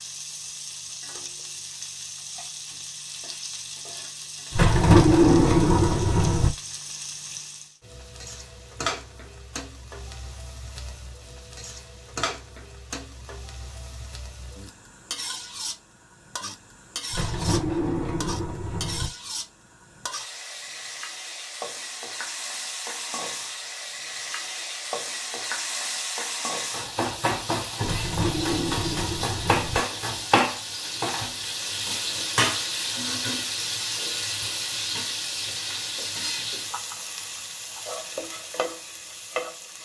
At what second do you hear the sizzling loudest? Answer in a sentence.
The volume of the sizzling peaks at 30 seconds.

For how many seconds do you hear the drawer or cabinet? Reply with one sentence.
You can hear the drawer or cabinet for 6 seconds altogether.